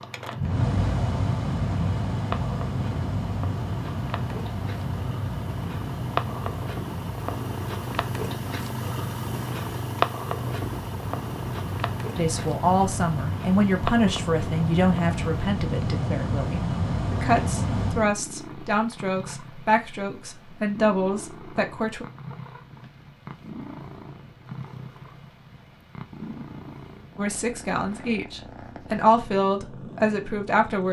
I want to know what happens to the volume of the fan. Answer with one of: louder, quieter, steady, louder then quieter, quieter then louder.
quieter then louder.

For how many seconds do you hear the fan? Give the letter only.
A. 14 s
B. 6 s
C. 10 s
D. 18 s
D.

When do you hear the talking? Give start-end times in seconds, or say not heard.
12.2-22.1, 27.1-30.8.